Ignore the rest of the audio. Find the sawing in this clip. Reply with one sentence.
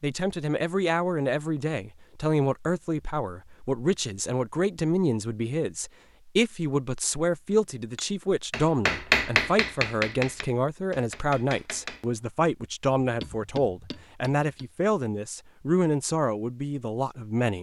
You can't hear the sawing here.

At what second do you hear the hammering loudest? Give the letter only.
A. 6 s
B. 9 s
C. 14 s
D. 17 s
B.